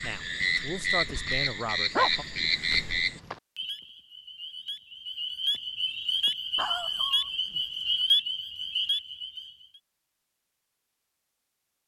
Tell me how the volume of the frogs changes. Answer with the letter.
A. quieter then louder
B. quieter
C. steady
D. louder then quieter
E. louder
A.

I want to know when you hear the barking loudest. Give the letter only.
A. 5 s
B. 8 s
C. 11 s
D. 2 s
D.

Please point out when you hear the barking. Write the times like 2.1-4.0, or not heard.
1.9-3.4, 6.5-7.6.